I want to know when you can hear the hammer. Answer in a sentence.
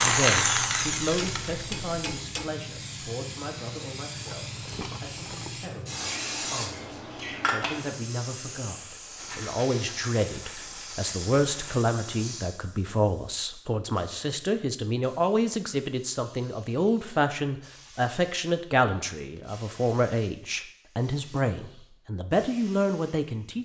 The hammer can be heard from 1.1 to 2.5 s.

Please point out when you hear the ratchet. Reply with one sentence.
The ratchet can't be heard in this clip.